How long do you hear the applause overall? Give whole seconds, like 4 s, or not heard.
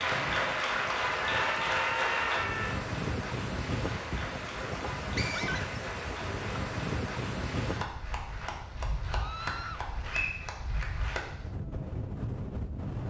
11 s.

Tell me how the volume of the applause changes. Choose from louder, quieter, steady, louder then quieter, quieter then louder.
quieter.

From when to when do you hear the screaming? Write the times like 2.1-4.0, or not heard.
1.4-2.9, 5.3-5.7, 9.2-9.8.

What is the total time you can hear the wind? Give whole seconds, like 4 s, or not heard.
13 s.